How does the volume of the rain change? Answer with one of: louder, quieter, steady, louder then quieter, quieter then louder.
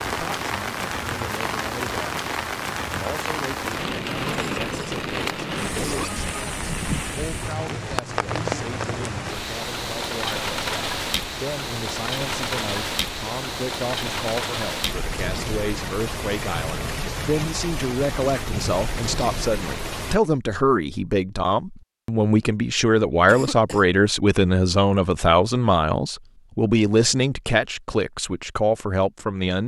steady.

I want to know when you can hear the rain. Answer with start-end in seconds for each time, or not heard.
0.0-20.2.